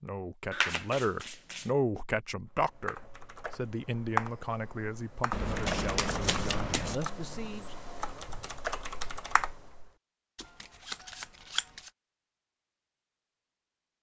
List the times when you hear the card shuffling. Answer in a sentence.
The card shuffling can be heard from 0.5 to 1.7 s, from 5.3 to 7.0 s and from 10.3 to 11.9 s.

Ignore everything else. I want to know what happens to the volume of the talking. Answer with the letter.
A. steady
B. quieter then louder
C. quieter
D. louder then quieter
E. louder
C.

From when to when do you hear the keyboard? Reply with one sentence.
You can hear the keyboard from 2.5 to 9.9 s.